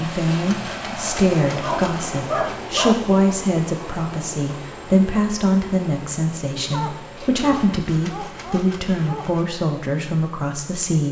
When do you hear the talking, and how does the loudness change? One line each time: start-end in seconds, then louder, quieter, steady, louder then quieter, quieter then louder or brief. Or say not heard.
0.0-11.0 steady.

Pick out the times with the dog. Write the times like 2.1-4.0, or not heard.
1.6-3.1, 6.7-9.4.